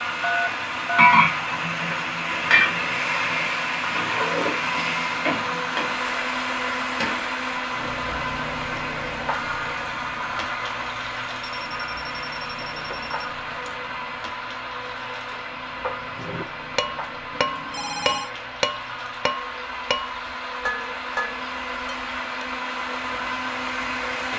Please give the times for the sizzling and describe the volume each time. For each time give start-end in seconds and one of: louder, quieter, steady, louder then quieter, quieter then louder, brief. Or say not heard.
0.0-24.3 quieter.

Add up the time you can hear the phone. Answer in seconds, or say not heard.
4 s.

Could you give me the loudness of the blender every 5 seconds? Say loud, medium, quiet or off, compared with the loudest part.
loud, loud, loud, medium, loud.